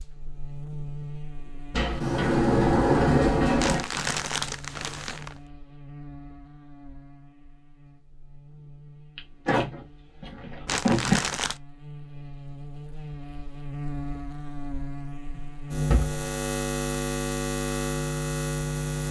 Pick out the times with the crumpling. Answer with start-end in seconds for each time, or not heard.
3.5-5.4, 10.7-11.6.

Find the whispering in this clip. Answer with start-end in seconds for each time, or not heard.
not heard.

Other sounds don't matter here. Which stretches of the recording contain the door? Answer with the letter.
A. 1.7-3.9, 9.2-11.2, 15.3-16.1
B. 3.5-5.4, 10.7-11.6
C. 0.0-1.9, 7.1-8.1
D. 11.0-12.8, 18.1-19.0
A.